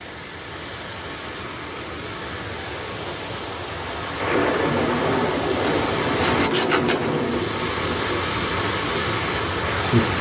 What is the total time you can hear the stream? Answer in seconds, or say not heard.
10 s.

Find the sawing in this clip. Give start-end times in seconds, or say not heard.
5.5-7.2.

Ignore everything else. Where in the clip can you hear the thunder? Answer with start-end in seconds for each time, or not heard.
4.2-8.2.